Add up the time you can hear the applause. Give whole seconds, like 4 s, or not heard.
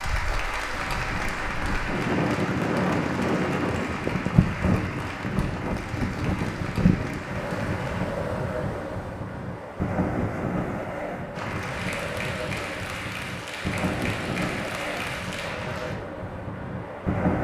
13 s.